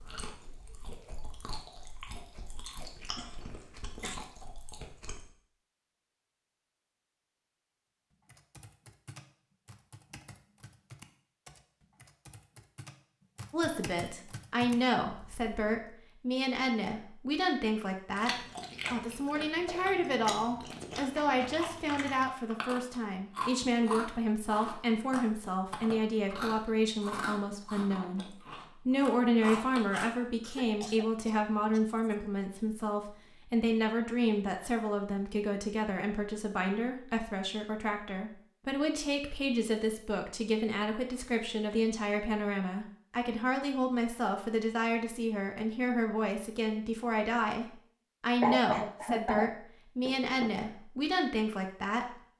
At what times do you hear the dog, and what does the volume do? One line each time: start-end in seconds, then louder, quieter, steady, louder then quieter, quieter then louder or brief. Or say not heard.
not heard.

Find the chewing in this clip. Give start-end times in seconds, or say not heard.
0.0-5.3, 18.1-30.1.